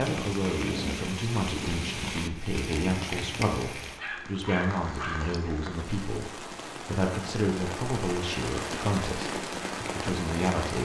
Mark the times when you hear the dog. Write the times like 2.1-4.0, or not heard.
4.0-5.4.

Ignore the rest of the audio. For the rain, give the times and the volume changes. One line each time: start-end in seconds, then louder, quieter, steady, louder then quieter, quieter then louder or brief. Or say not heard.
0.0-10.8 quieter then louder.